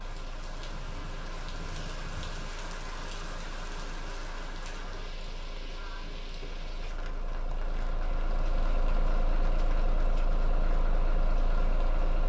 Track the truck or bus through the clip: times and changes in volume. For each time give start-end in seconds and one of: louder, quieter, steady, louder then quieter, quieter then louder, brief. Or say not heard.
0.0-12.2 louder.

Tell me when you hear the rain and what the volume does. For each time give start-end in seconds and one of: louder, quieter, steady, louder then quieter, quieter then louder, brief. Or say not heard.
0.0-12.2 quieter.